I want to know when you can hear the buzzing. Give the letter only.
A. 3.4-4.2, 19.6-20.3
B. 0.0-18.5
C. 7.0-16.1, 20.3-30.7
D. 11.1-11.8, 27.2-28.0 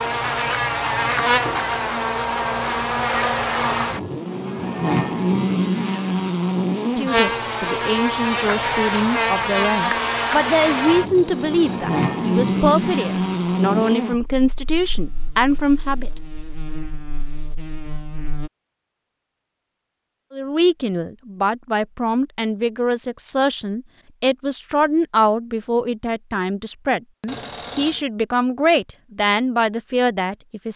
B.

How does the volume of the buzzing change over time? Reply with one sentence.
The loudness of the buzzing goes down.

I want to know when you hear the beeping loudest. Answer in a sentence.
The volume of the beeping peaks at 28 seconds.